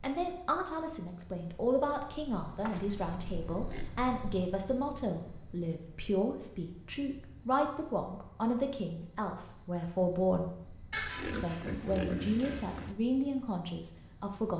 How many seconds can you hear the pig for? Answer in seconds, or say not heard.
3 s.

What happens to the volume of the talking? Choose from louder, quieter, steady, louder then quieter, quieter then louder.
steady.